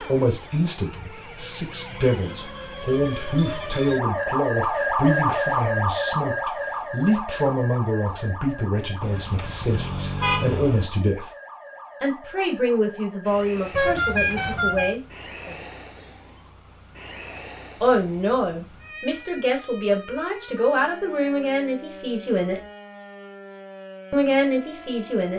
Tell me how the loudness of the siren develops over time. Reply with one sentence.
The loudness of the siren goes down.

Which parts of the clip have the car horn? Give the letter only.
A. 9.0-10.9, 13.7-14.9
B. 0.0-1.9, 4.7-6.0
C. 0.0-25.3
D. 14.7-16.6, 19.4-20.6
A.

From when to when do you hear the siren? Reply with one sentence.
You can hear the siren from 0.0 to 25.3 s.